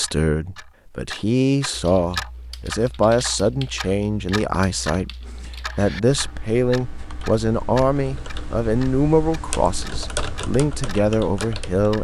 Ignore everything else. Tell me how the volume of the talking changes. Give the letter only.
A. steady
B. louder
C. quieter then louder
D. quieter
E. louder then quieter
A.